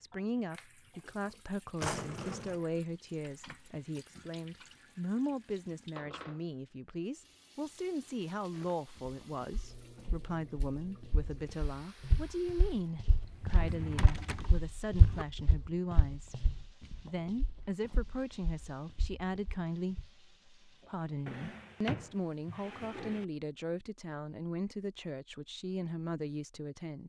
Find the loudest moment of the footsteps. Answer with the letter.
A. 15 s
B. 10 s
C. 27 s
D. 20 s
A.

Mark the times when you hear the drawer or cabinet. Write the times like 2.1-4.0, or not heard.
1.8-2.6, 13.2-15.2, 21.2-23.2.